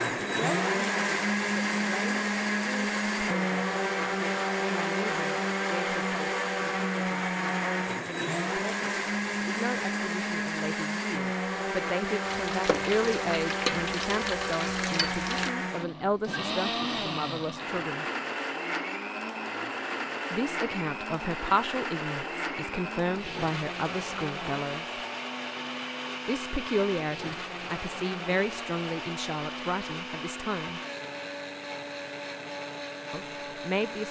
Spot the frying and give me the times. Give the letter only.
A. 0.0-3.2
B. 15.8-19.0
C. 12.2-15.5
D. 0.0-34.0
C.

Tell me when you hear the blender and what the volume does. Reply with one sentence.
The blender can be heard from 0.0 to 34.0 s, getting quieter.